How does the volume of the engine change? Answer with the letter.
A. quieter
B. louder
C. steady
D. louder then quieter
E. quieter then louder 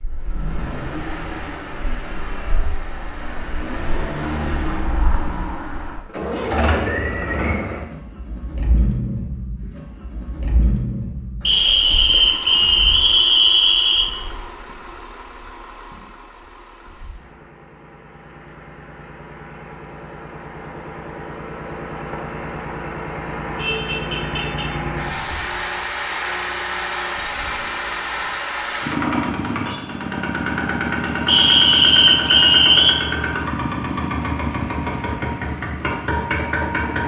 E.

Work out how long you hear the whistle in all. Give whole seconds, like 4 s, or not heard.
4 s.